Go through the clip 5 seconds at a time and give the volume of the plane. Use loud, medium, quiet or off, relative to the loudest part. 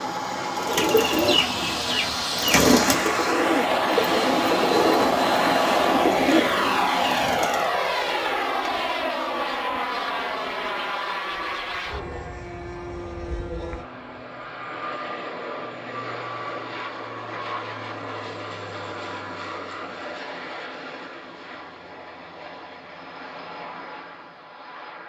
loud, loud, medium, medium, quiet.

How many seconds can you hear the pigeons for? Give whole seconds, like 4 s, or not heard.
7 s.